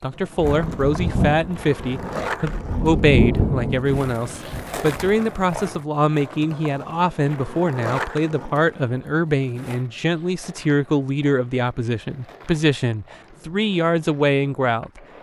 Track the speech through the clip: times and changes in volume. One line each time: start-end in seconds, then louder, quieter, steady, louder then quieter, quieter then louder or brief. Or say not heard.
0.0-15.0 steady.